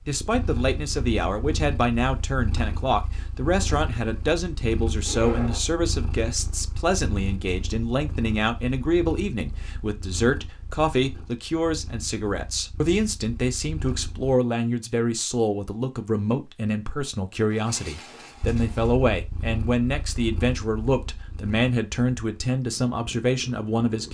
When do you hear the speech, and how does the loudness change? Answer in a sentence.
The speech can be heard from 0.1 to 24.0 s, at a steady volume.